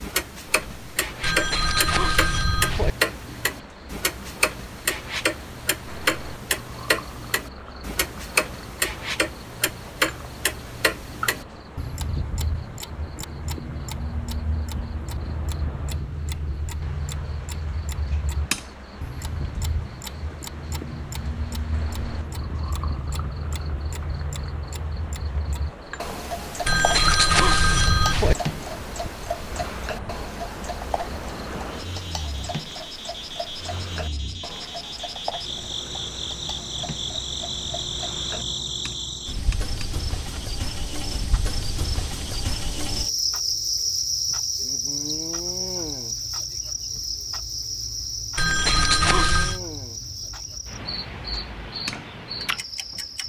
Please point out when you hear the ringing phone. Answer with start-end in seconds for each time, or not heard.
1.2-2.9, 26.6-28.4, 48.4-49.6.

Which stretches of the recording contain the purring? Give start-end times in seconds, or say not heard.
not heard.